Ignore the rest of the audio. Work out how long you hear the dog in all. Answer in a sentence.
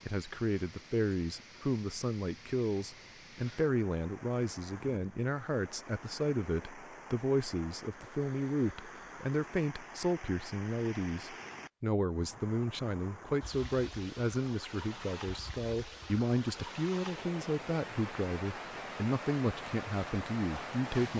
You can't hear the dog here.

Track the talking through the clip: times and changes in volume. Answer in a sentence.
You can hear the talking from 0.1 to 21.1 s, at a steady volume.